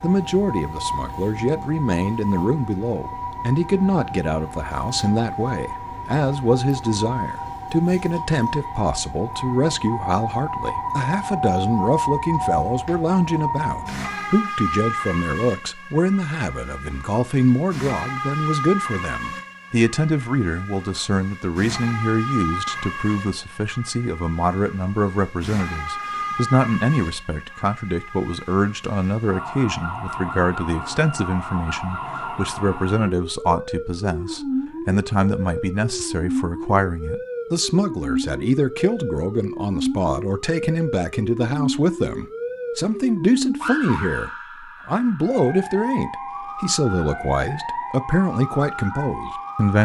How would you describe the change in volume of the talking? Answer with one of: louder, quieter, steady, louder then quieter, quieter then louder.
steady.